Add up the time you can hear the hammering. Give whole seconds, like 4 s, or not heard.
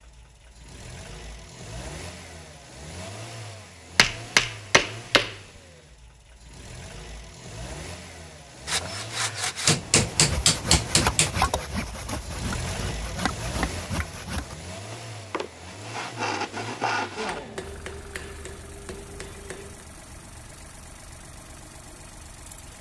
6 s.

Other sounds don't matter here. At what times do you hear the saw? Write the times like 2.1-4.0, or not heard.
8.7-17.4.